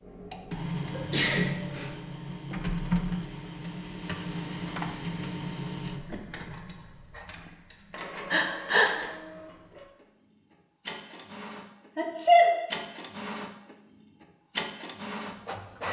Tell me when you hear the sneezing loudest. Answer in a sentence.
The volume of the sneezing peaks at 12 seconds.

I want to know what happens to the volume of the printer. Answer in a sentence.
The loudness of the printer goes down, then up.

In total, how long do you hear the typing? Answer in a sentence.
The typing can't be heard in this clip.